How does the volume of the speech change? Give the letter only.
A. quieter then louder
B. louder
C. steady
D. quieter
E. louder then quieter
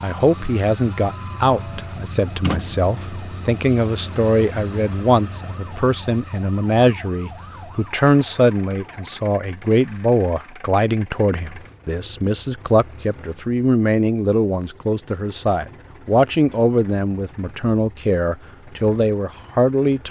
C.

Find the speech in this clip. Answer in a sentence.
You can hear the speech from 0.0 to 20.0 s.